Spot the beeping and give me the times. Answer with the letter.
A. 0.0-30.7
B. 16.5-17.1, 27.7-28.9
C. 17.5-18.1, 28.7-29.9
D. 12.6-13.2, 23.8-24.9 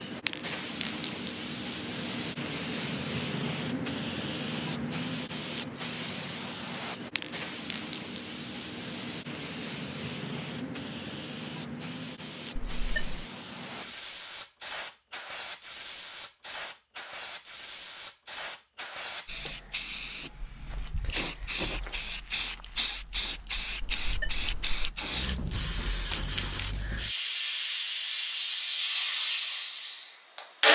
D.